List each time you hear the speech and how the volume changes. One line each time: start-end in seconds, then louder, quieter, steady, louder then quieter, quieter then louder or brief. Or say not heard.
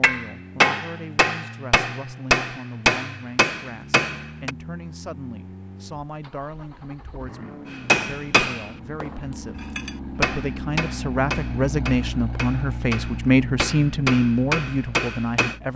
0.0-15.7 louder.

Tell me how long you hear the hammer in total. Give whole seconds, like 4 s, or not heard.
12 s.